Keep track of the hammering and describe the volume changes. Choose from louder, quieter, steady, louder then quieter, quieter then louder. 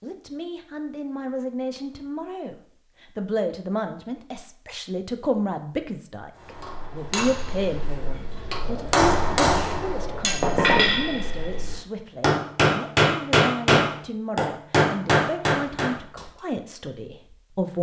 louder.